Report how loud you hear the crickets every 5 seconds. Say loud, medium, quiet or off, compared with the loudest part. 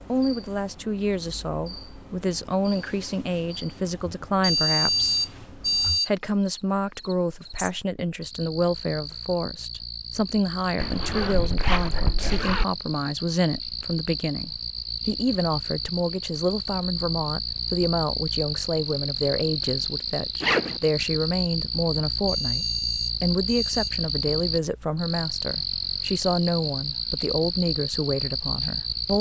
quiet, medium, medium, loud, loud, loud.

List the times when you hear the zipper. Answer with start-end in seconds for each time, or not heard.
10.8-12.7, 20.4-20.8.